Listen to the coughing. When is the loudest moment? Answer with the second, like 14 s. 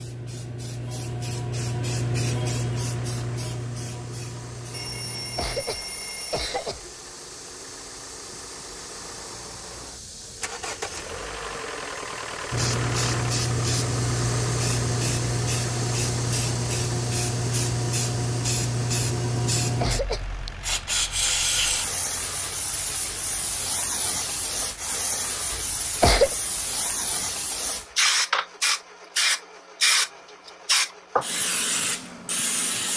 26 s.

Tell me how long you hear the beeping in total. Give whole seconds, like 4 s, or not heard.
2 s.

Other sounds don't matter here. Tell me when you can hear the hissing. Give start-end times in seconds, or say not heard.
0.0-5.7, 12.5-32.9.